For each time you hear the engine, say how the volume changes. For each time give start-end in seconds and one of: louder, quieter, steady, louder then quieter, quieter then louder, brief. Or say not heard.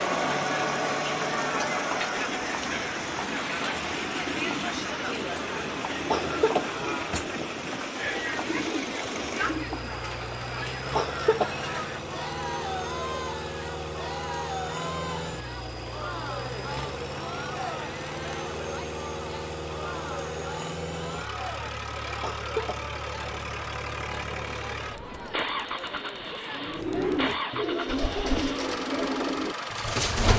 0.0-30.3 steady.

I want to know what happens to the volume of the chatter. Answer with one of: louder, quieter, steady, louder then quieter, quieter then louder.
quieter.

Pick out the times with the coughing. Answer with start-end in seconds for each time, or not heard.
6.1-6.7, 10.9-11.6, 22.2-22.9.